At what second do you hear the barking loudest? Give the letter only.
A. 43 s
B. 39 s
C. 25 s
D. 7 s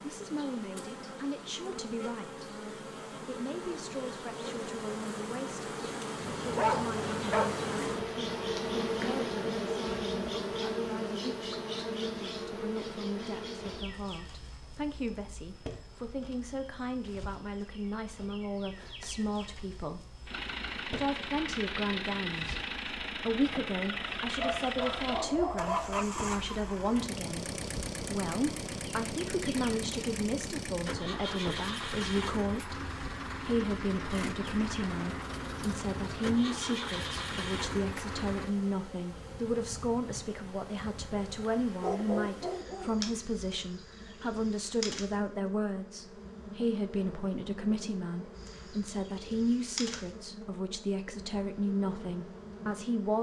D.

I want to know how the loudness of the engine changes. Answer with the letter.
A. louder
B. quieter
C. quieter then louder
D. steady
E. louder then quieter
D.